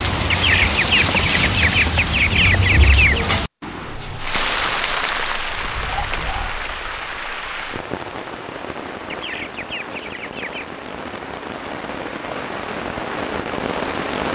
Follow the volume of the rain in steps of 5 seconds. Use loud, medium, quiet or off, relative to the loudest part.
loud, medium, medium.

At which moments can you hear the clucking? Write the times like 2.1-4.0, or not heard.
0.3-3.2, 9.1-10.7.